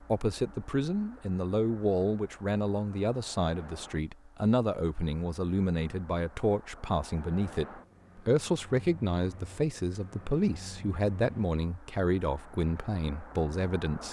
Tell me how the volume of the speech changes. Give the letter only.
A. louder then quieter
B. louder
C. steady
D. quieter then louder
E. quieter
C.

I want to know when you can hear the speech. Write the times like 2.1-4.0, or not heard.
0.1-14.0.